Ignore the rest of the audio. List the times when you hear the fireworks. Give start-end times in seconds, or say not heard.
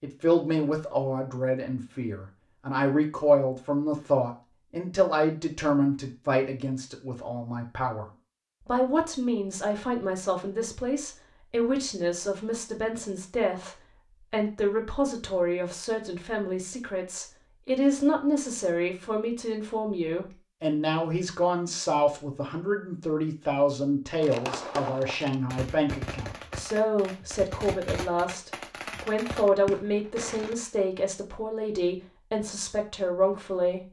24.2-30.6.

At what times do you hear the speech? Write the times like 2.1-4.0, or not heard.
0.0-33.8.